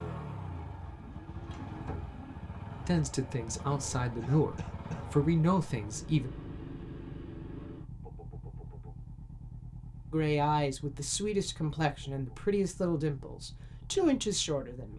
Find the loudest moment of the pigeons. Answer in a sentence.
The loudest moment of the pigeons is at 2 seconds.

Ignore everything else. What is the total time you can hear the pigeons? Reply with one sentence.
You can hear the pigeons for 2 seconds altogether.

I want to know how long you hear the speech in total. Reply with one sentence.
The speech can be heard for 8 seconds in total.